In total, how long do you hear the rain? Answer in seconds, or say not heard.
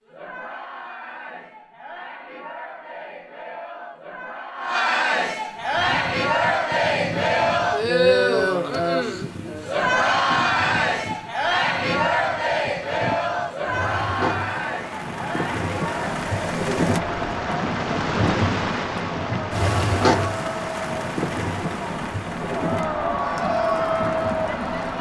19 s.